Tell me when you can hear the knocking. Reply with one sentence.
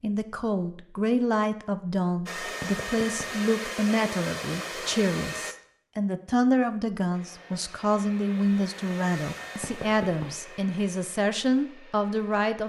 The knocking can be heard from 2.6 to 3.2 s and from 9.6 to 10.2 s.